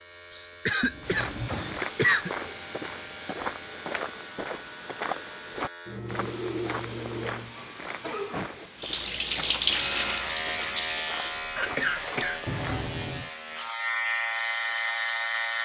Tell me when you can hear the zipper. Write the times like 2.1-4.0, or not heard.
not heard.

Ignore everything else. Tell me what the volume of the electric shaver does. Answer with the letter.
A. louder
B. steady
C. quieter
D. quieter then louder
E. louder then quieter
A.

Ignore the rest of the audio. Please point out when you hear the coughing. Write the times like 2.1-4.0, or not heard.
0.3-2.3, 7.5-8.7, 11.6-12.4.